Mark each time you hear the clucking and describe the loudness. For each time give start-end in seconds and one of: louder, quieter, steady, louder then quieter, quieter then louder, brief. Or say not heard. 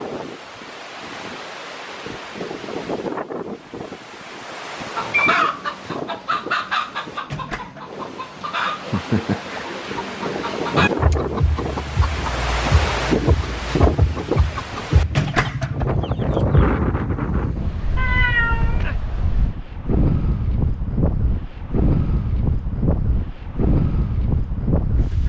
5.0-16.6 steady.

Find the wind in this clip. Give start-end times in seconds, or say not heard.
0.0-25.2.